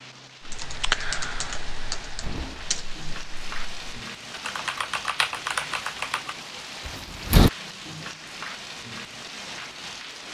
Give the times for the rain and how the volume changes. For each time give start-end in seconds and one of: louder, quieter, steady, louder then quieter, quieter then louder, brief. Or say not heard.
0.0-10.2 louder.